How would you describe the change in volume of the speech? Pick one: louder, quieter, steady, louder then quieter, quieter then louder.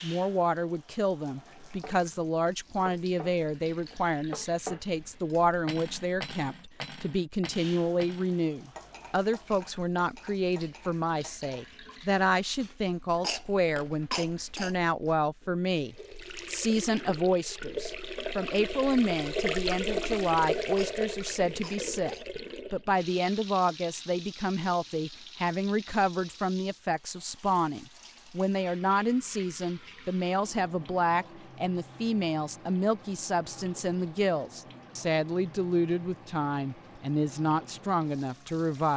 steady.